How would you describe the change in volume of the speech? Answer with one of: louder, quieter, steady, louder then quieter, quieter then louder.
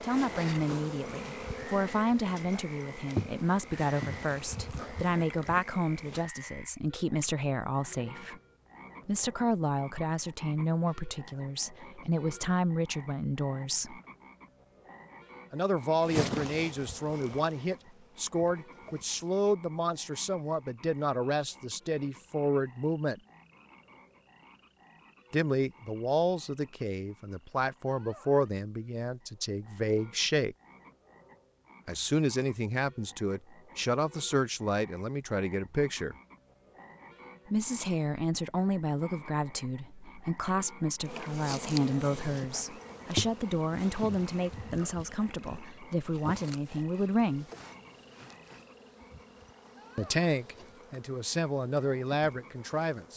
steady.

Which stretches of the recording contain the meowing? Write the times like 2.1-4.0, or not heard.
not heard.